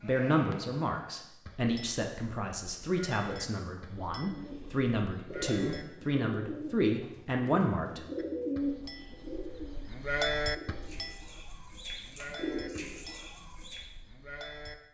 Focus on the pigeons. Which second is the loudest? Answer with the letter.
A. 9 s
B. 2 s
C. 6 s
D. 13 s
A.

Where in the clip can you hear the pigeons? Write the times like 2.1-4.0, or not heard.
4.2-13.9.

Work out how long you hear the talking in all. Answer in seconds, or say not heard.
8 s.